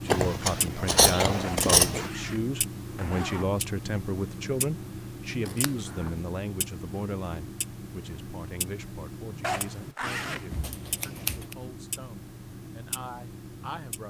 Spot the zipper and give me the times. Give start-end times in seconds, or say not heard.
1.4-3.5, 9.4-10.6.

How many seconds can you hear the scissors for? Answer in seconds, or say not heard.
4 s.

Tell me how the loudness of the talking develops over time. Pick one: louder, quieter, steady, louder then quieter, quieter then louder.
quieter.